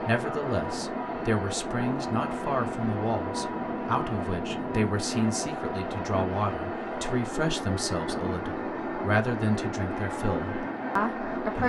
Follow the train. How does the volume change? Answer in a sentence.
The loudness of the train stays about the same.